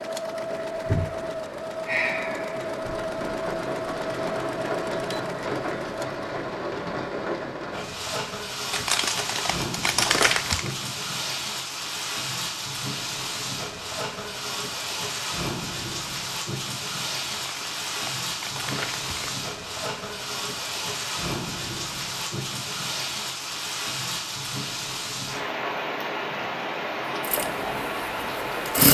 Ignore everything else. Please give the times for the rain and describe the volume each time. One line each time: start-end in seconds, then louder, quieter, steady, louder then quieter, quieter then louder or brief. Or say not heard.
0.0-28.8 steady.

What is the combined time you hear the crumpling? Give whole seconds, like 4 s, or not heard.
4 s.